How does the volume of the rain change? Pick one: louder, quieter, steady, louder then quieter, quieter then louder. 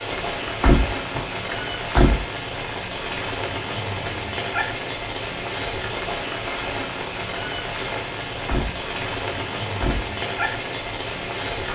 steady.